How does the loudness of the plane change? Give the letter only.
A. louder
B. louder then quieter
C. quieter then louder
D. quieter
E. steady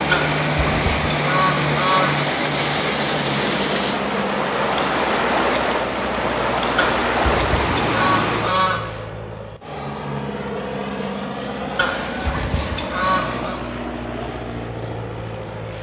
E.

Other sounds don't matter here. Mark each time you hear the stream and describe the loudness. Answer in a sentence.
The stream can be heard from 0.0 to 8.6 s, at a steady volume.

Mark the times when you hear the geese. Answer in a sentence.
The geese can be heard from 0.1 to 2.1 s, from 6.8 to 8.8 s and from 11.8 to 13.6 s.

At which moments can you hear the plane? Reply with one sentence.
You can hear the plane from 0.0 to 15.7 s.